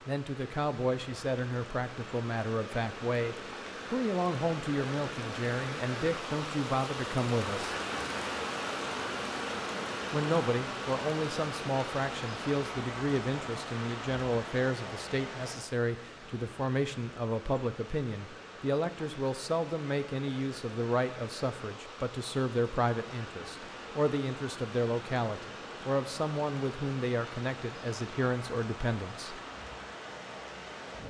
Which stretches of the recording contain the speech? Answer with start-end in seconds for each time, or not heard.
0.1-7.8, 10.1-29.4.